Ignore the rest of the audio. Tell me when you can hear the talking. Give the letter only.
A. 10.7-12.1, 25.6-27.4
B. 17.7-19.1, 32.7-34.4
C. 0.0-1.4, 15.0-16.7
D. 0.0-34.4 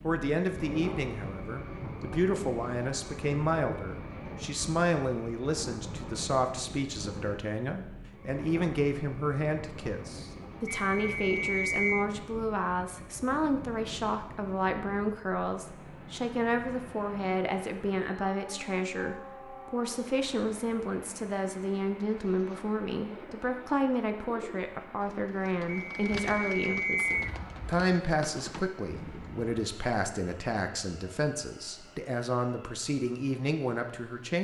D.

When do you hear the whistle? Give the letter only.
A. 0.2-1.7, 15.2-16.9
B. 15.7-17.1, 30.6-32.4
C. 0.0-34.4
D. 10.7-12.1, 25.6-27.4
D.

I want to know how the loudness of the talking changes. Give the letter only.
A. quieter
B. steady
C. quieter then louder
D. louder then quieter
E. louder
B.